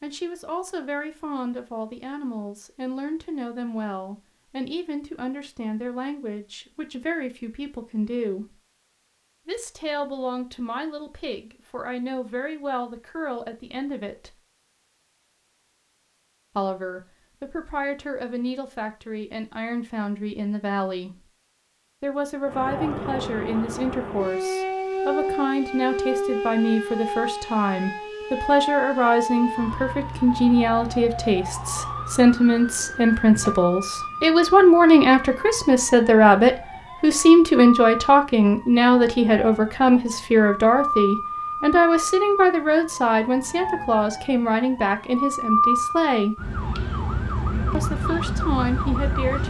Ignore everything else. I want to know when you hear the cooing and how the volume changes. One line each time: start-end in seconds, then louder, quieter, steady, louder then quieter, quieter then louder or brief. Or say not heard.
not heard.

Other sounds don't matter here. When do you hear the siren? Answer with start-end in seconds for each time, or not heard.
22.4-49.4.